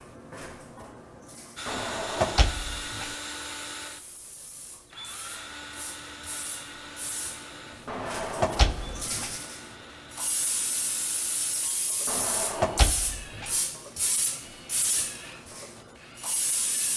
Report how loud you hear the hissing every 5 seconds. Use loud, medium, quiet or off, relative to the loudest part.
quiet, medium, loud, loud.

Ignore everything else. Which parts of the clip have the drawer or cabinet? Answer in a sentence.
You can hear the drawer or cabinet from 1.6 to 3.1 s, from 7.8 to 9.3 s and from 12.1 to 13.5 s.